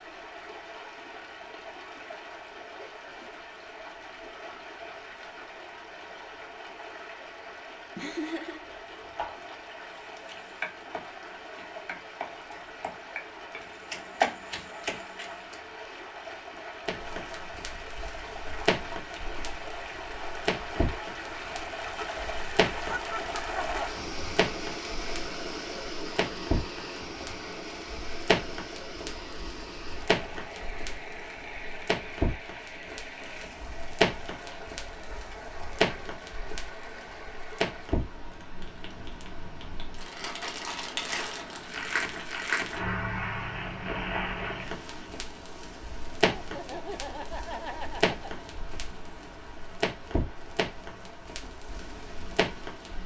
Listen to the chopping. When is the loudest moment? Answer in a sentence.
The loudest moment of the chopping is at 14 seconds.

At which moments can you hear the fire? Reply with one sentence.
The fire can be heard from 16.9 to 53.0 s.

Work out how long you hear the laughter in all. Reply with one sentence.
You can hear the laughter for 4 seconds altogether.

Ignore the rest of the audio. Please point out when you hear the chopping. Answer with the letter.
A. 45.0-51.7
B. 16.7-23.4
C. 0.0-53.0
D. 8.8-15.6
D.